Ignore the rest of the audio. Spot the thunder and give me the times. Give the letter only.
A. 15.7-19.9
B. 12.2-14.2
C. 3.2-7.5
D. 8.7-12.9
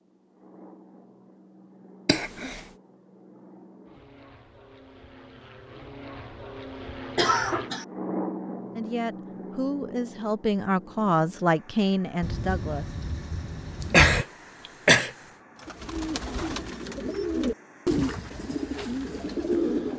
B.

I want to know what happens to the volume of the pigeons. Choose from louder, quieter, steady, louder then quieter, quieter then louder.
louder then quieter.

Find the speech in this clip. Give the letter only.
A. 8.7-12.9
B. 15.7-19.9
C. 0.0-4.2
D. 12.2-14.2
A.